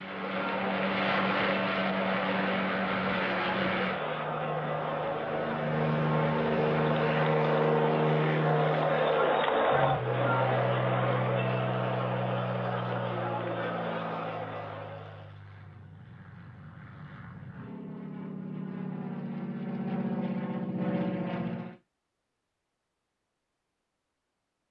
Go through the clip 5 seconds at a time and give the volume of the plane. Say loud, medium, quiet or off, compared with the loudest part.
loud, loud, medium, medium, loud.